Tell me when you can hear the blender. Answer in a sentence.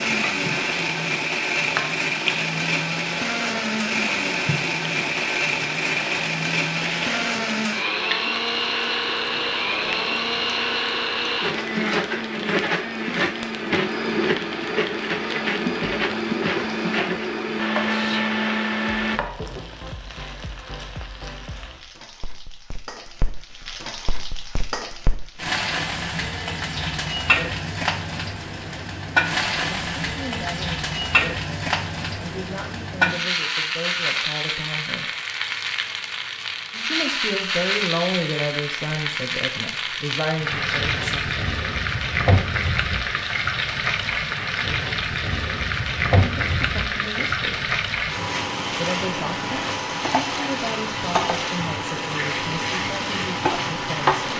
The blender can be heard from 0.0 to 19.2 s.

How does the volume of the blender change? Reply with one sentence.
The volume of the blender stays about the same.